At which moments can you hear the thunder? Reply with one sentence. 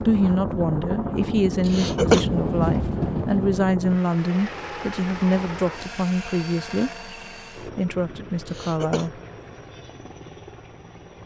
You can hear the thunder from 1.6 to 3.6 s.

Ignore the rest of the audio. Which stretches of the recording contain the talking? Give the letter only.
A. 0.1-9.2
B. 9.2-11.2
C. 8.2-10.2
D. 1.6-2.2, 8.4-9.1
A.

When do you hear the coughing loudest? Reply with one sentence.
The volume of the coughing peaks at 2 seconds.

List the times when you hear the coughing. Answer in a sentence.
You can hear the coughing from 1.6 to 2.2 s and from 8.4 to 9.1 s.